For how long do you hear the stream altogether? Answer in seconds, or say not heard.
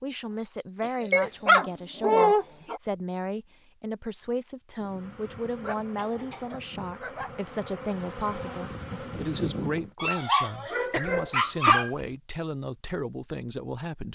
not heard.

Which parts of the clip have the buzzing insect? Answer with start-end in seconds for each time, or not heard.
4.8-9.9.